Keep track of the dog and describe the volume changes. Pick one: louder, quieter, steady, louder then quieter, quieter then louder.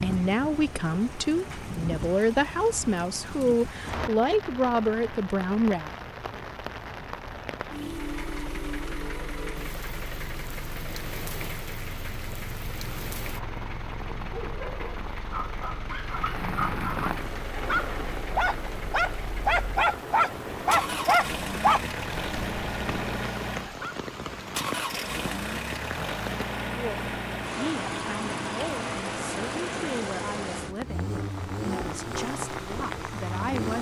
louder then quieter.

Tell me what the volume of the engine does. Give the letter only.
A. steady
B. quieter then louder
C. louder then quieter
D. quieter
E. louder
E.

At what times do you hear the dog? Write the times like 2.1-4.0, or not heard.
14.2-23.9.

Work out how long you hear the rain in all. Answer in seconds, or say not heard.
34 s.